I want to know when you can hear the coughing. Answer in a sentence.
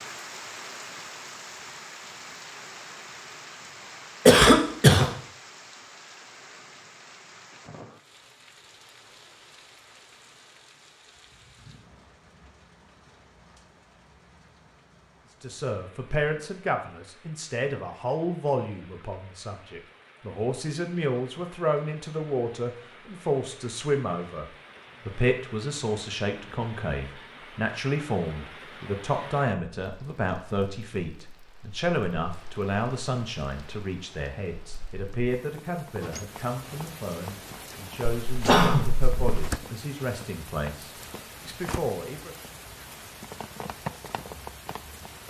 You can hear the coughing from 4.2 to 5.1 s and from 38.2 to 39.5 s.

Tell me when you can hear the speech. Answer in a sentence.
You can hear the speech from 15.4 to 42.4 s.